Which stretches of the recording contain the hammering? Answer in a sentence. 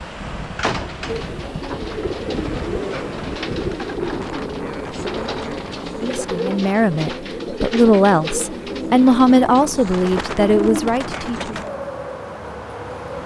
You can't hear the hammering here.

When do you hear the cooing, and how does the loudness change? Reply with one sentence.
The cooing can be heard from 1.1 to 11.7 s, at a steady volume.